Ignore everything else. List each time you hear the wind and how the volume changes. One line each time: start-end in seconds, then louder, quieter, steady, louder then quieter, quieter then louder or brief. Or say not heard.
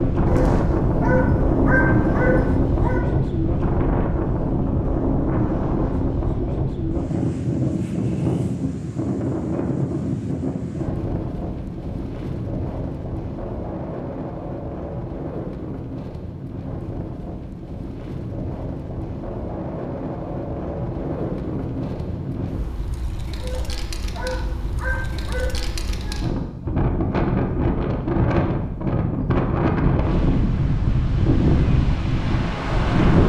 0.0-33.2 quieter then louder.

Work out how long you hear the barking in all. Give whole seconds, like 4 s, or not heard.
5 s.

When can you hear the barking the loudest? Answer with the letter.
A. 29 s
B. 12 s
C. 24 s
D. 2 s
D.